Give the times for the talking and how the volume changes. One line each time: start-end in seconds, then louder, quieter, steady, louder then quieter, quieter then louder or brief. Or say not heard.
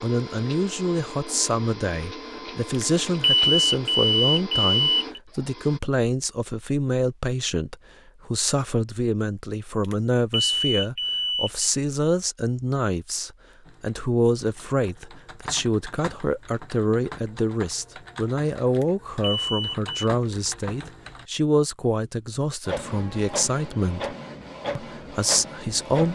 0.0-24.1 steady
24.8-26.0 brief.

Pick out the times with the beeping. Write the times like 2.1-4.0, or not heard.
2.7-5.2, 9.8-11.7, 18.7-19.9.